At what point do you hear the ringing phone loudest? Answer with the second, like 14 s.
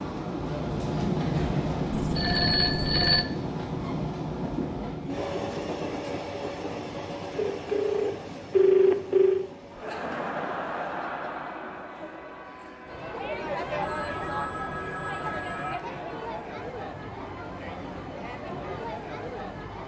9 s.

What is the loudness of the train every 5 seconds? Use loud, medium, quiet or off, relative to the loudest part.
loud, medium, quiet, quiet.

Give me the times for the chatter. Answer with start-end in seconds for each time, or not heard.
9.7-19.8.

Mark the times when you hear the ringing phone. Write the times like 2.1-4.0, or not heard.
1.9-3.2, 7.3-9.5, 13.7-15.8.